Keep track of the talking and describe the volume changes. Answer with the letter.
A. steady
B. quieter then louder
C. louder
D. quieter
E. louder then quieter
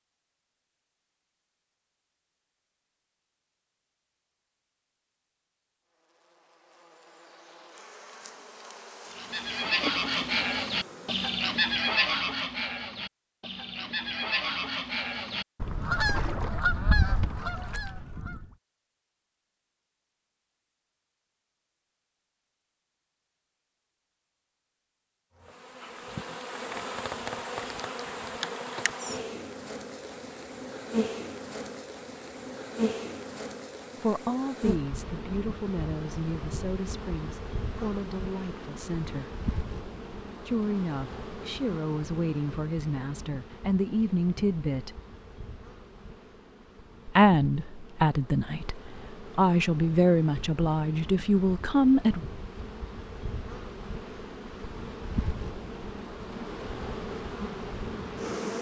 C.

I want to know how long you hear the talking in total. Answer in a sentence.
You can hear the talking for 15 seconds altogether.